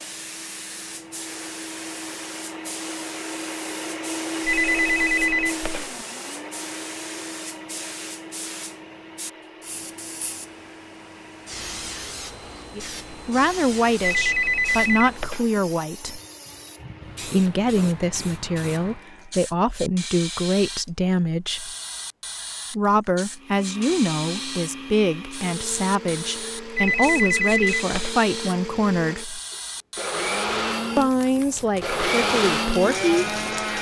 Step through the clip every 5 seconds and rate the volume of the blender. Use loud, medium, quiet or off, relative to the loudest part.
medium, medium, quiet, quiet, quiet, medium, loud.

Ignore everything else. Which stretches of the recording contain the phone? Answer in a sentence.
You can hear the phone from 4.5 to 6.0 s, from 14.0 to 15.6 s and from 26.8 to 28.1 s.